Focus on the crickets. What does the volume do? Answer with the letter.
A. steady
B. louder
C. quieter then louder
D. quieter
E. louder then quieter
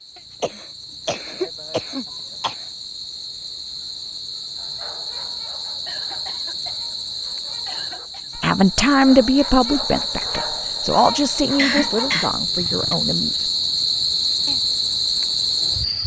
B.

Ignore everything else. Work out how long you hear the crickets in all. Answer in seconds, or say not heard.
16 s.